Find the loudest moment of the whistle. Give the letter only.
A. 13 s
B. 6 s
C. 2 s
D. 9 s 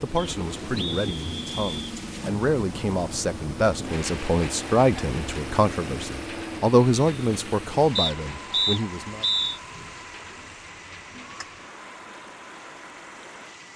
D.